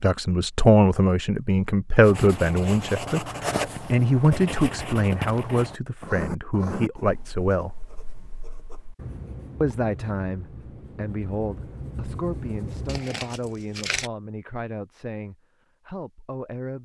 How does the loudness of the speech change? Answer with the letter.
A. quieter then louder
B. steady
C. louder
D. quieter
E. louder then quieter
D.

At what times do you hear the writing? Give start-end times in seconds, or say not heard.
2.0-13.0.